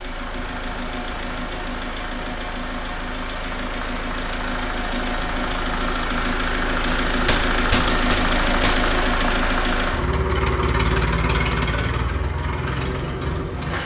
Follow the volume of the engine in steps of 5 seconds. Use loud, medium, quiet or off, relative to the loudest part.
medium, loud, loud.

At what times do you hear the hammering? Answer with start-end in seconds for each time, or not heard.
7.0-8.8.